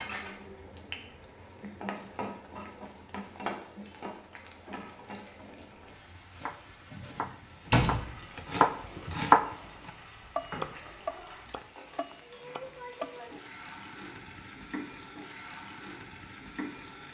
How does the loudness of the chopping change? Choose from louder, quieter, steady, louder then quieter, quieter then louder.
louder then quieter.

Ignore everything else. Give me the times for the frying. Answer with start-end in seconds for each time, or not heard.
0.0-17.0.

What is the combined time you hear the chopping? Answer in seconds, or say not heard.
7 s.